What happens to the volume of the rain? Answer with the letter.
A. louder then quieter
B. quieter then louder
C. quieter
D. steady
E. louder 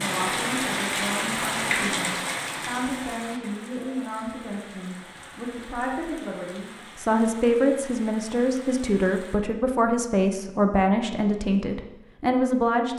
C.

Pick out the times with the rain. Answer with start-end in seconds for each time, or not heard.
0.0-9.4.